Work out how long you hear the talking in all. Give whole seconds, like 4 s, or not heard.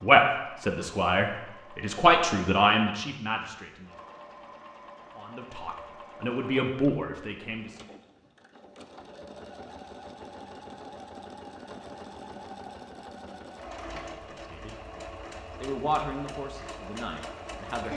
11 s.